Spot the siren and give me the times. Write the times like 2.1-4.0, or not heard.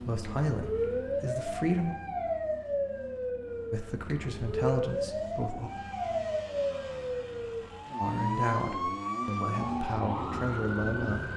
0.0-11.3.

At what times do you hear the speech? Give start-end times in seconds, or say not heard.
0.0-1.9, 3.7-5.7, 8.0-11.3.